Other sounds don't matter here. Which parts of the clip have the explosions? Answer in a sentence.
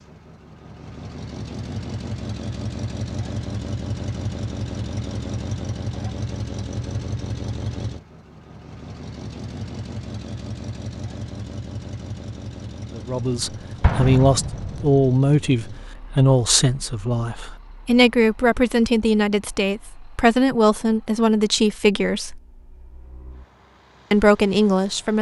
The explosions can be heard from 13.8 to 14.9 s.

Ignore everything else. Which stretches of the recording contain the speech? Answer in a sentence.
The speech can be heard from 12.9 to 22.4 s and from 24.1 to 25.1 s.